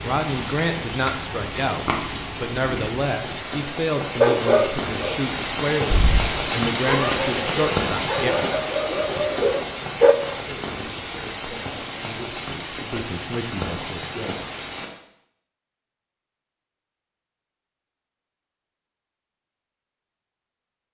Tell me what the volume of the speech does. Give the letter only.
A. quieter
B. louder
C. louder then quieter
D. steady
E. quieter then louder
A.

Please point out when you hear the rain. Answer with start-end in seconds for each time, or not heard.
0.0-14.9.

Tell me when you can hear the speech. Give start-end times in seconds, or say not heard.
0.0-8.3, 10.1-14.3.